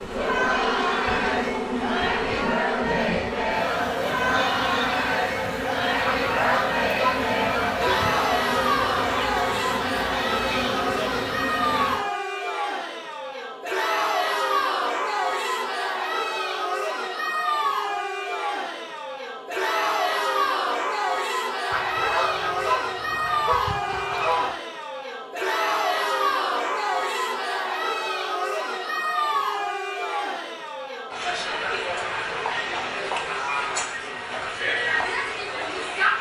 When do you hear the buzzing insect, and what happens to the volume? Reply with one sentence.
You can hear the buzzing insect from 0.0 to 12.1 s, at a steady volume.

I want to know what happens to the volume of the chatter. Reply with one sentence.
The volume of the chatter stays about the same.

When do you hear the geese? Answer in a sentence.
You can hear the geese from 6.0 to 8.2 s and from 21.7 to 24.6 s.